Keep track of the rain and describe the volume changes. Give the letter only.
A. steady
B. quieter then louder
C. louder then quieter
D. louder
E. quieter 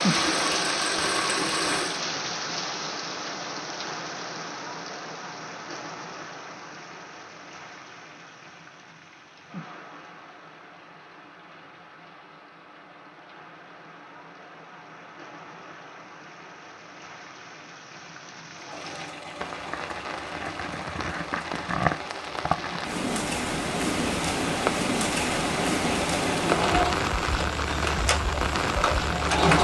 B.